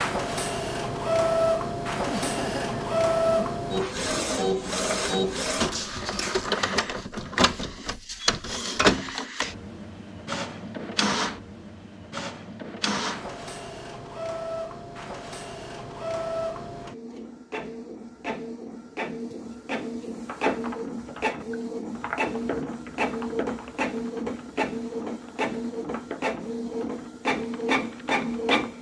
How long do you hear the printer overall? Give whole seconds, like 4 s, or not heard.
29 s.